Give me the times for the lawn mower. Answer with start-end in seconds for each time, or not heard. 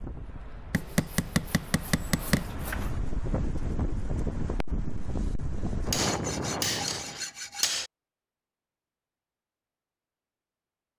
not heard.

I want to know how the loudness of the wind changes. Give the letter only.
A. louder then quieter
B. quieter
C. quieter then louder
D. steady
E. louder
E.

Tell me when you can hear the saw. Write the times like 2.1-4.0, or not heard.
0.8-2.9, 5.8-7.8.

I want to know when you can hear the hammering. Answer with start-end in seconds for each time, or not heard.
0.7-2.5, 5.9-7.9.